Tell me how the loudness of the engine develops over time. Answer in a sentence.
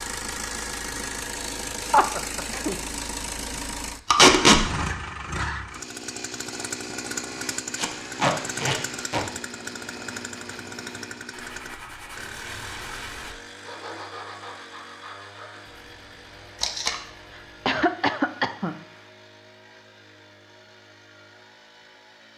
The volume of the engine goes down.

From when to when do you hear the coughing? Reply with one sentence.
You can hear the coughing from 1.9 to 2.8 s and from 17.3 to 18.8 s.